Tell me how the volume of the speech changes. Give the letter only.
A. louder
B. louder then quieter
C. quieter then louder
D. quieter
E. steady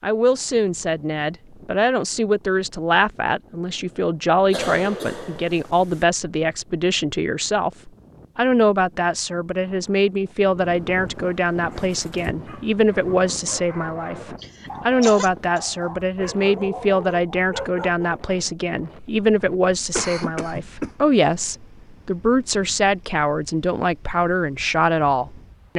E.